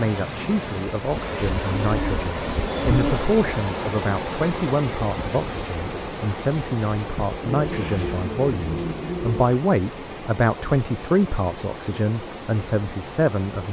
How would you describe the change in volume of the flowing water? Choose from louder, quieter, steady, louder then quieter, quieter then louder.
quieter.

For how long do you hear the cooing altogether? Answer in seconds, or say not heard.
4 s.